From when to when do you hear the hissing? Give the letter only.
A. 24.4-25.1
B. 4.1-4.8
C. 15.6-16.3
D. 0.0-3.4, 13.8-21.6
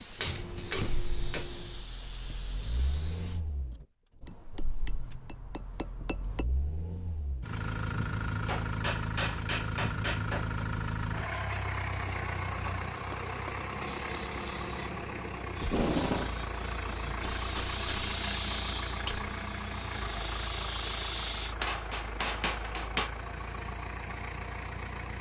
D.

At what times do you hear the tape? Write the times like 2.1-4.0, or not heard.
15.6-16.3.